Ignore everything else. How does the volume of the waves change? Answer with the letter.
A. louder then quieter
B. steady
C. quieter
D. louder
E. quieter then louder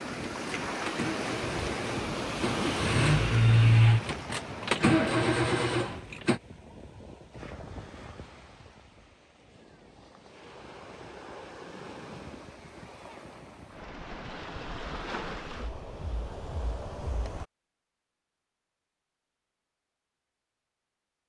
E.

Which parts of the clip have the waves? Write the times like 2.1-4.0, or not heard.
0.0-17.4.